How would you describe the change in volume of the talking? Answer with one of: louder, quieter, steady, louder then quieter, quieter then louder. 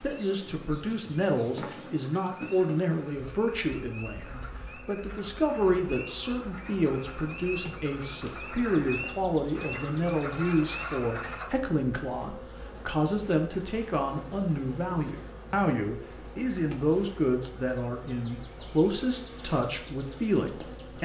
steady.